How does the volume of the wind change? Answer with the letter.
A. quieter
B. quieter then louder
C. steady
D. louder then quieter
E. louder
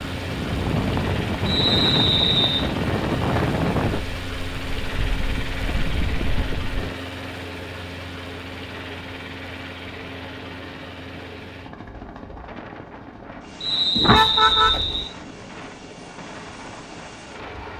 A.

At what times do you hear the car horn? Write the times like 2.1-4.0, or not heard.
13.9-15.1.